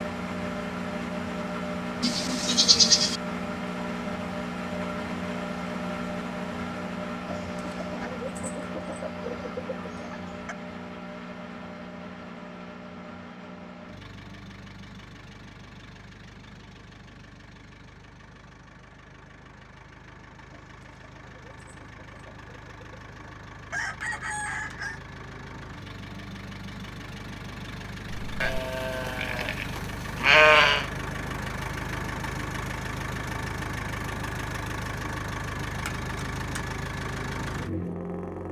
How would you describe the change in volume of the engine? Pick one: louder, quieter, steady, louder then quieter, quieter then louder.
quieter then louder.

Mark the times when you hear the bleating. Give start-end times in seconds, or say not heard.
2.0-3.2, 28.2-30.9.